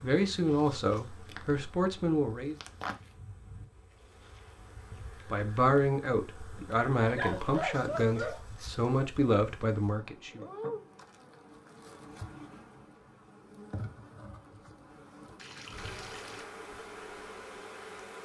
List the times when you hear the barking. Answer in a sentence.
The barking can be heard from 7.0 to 8.4 s.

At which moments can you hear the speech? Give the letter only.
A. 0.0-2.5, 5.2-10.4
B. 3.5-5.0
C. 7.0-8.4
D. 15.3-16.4
A.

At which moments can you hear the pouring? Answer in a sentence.
The pouring can be heard from 15.3 to 16.4 s.